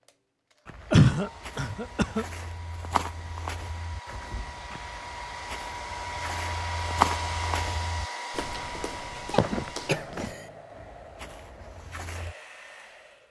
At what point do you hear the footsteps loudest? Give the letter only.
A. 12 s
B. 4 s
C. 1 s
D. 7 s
D.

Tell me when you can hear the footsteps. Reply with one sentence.
The footsteps can be heard from 0.7 to 12.3 s.